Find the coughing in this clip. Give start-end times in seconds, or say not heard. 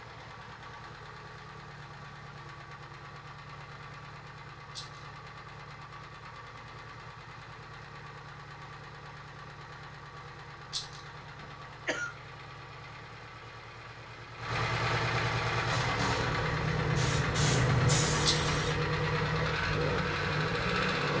11.2-12.1.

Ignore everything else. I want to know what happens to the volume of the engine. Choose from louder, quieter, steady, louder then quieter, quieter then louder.
louder.